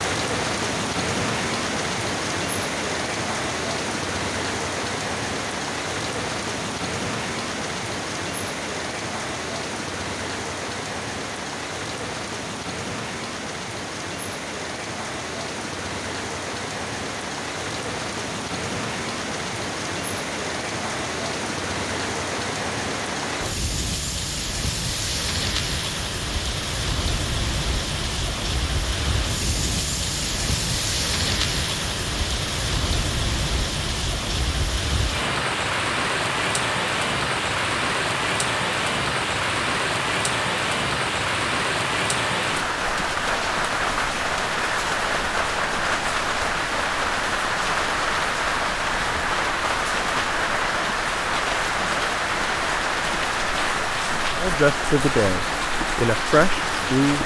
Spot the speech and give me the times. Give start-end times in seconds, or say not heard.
54.4-57.2.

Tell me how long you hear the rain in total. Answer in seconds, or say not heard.
57 s.